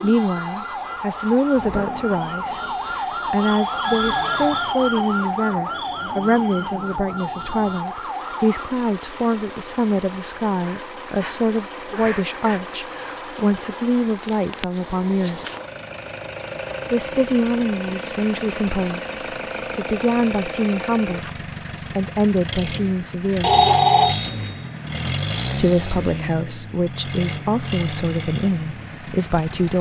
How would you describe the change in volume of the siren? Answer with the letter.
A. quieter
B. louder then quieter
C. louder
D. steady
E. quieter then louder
B.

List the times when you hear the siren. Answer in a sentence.
The siren can be heard from 0.0 to 8.7 s.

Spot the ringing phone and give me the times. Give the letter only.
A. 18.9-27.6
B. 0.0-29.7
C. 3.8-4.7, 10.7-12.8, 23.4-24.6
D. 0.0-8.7
C.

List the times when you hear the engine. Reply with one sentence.
The engine can be heard from 0.0 to 29.7 s.